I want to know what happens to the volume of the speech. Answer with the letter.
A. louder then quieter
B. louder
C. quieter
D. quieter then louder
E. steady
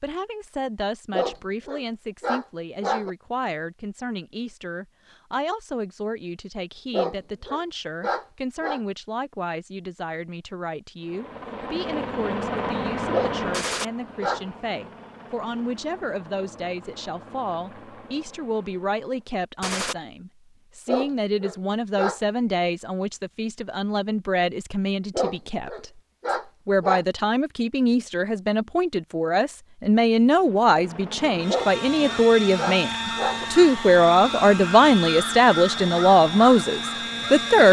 B.